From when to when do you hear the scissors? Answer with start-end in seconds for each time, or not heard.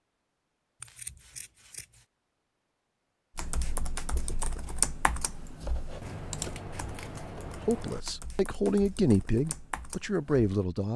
0.8-2.0, 6.0-8.1.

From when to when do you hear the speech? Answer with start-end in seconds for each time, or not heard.
7.3-10.9.